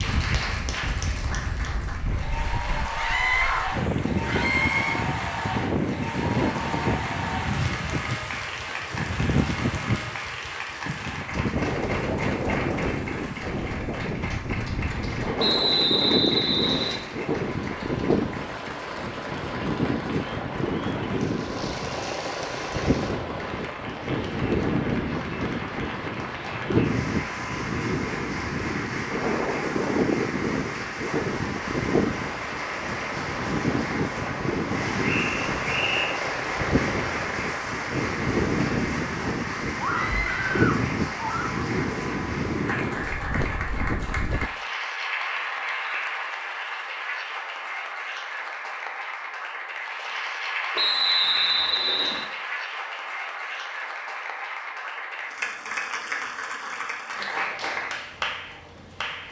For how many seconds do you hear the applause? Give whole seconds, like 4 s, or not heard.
59 s.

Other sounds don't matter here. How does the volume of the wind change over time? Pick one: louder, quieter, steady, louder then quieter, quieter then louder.
steady.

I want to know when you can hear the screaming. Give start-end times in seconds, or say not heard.
3.0-5.0, 39.8-41.6.